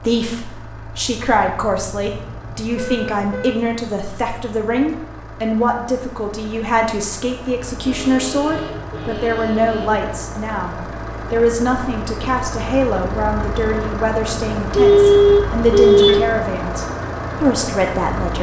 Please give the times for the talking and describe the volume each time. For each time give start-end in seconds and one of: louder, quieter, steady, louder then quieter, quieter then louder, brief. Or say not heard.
0.0-18.3 steady.